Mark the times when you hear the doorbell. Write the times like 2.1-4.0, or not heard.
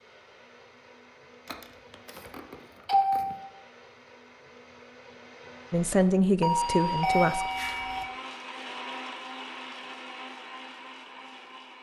1.4-3.5, 6.4-8.1.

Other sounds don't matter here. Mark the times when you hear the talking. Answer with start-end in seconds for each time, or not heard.
5.7-7.5.